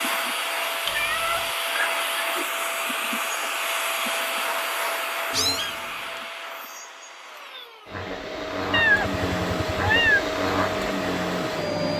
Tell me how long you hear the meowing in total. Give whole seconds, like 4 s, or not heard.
3 s.